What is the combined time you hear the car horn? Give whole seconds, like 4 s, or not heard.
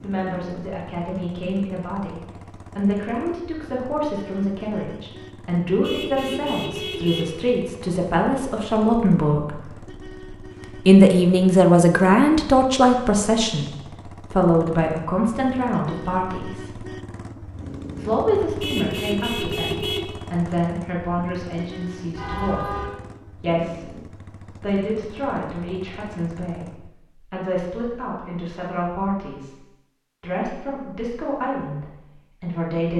4 s.